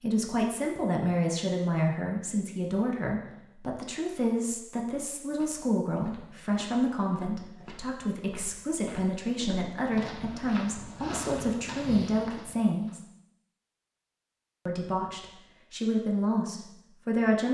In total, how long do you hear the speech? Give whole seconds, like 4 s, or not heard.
16 s.